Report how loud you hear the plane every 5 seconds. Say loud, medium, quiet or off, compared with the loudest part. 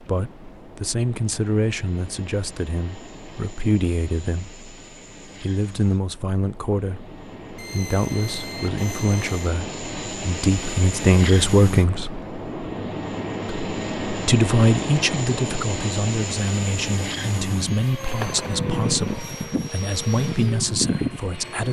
quiet, medium, loud, loud, loud.